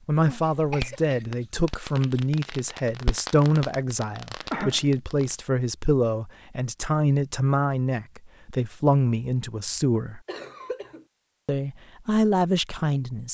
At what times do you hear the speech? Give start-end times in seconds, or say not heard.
0.1-10.2, 11.4-13.2.